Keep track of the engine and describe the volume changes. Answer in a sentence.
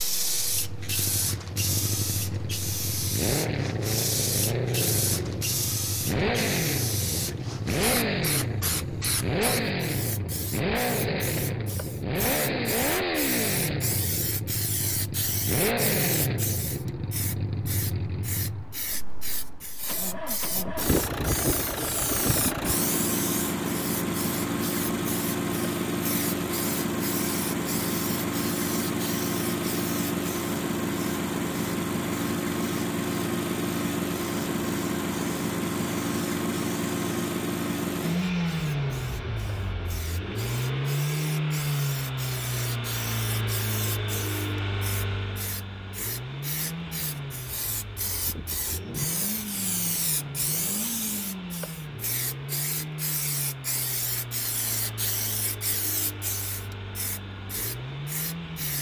The loudness of the engine goes down.